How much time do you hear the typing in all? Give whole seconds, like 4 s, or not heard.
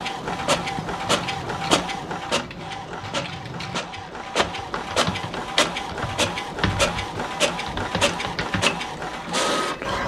8 s.